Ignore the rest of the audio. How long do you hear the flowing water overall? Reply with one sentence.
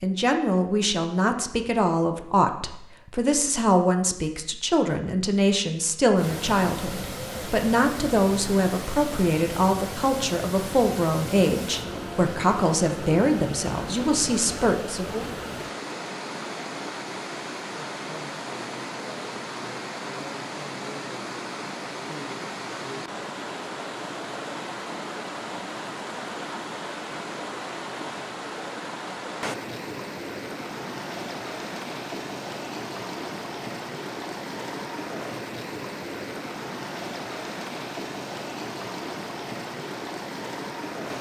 The flowing water can be heard for 35 seconds in total.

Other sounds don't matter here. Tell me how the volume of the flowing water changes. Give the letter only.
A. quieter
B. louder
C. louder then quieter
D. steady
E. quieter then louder
D.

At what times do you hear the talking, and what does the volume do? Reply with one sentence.
The talking can be heard from 0.0 to 15.3 s, at a steady volume.